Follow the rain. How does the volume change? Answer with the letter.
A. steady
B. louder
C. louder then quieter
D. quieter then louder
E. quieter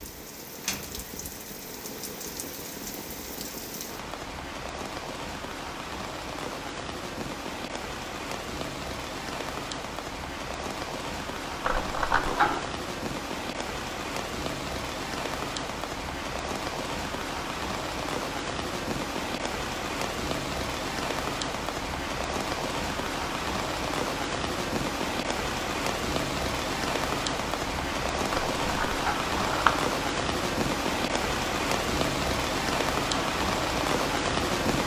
B.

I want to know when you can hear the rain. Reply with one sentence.
The rain can be heard from 0.0 to 34.8 s.